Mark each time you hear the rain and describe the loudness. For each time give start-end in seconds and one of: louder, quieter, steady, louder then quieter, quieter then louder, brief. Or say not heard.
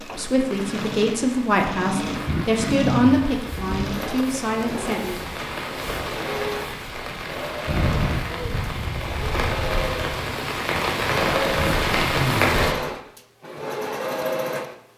0.0-12.8 louder.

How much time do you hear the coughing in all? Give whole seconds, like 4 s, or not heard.
3 s.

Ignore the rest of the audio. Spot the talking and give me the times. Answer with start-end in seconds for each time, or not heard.
0.0-5.2.